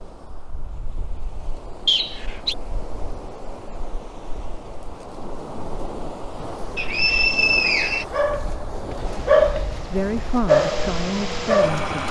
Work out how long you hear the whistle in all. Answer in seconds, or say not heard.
2 s.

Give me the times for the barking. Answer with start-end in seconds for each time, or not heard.
8.1-12.0.